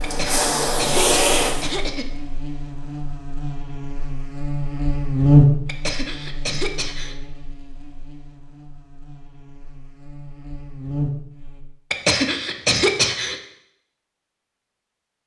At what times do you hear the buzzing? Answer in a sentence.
The buzzing can be heard from 0.0 to 11.7 s.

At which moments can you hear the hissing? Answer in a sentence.
The hissing can be heard from 0.0 to 1.7 s.